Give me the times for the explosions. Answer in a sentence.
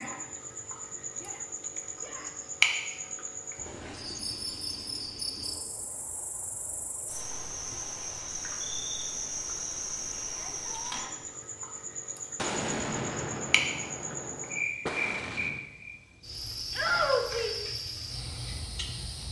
The explosions can be heard from 12.3 to 15.7 s.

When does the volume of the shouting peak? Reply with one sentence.
The loudest moment of the shouting is at 17 seconds.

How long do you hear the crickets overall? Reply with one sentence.
You can hear the crickets for 19 seconds altogether.